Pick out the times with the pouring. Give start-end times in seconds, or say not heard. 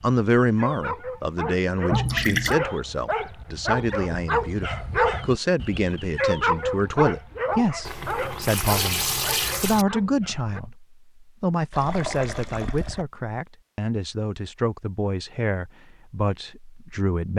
1.9-2.6, 7.8-9.8, 11.7-13.1.